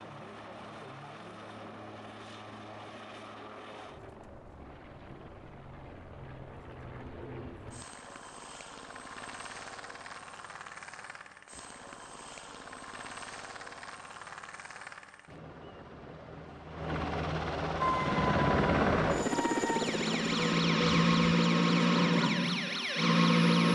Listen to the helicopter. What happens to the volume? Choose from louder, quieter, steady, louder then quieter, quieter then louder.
louder.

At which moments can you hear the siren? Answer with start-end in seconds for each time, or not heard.
17.8-23.7.